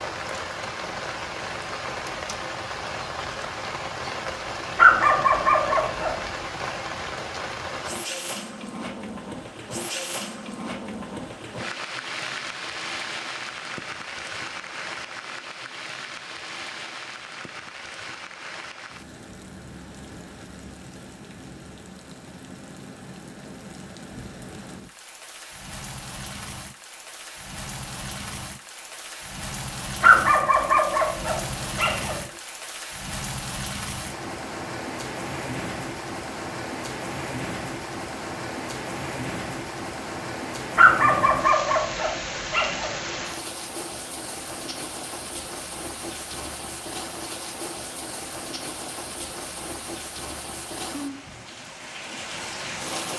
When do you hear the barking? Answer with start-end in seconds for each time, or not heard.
4.8-6.3, 30.0-32.2, 40.8-43.1.